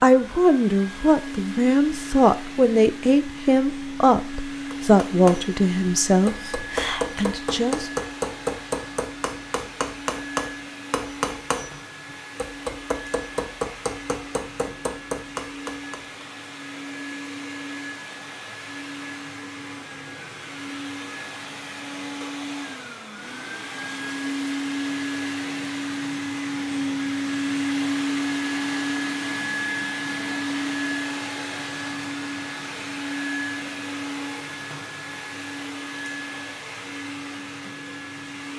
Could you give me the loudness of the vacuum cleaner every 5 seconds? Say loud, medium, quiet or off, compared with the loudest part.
medium, medium, medium, medium, medium, loud, loud, medium.